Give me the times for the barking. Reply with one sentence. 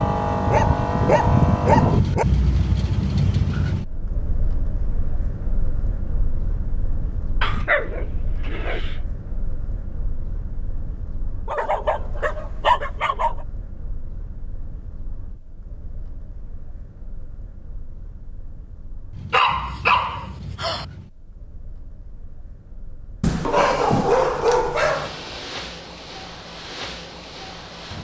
You can hear the barking from 0.5 to 2.2 s, from 7.4 to 8.9 s, from 11.4 to 13.4 s, from 19.3 to 20.9 s and from 23.2 to 25.1 s.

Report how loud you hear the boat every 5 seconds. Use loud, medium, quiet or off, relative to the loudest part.
loud, quiet, quiet, quiet, quiet, quiet.